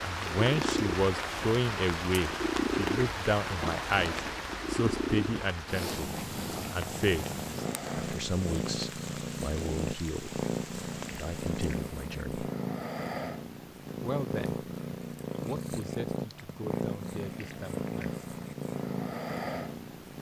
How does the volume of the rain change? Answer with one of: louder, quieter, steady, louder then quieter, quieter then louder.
quieter.